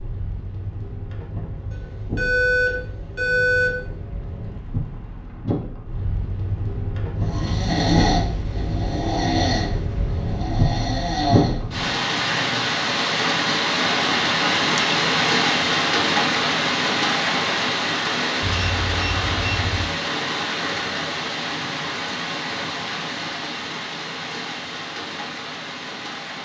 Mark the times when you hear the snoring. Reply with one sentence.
The snoring can be heard from 7.2 to 12.7 s.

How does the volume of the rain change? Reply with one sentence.
The loudness of the rain goes up, then down.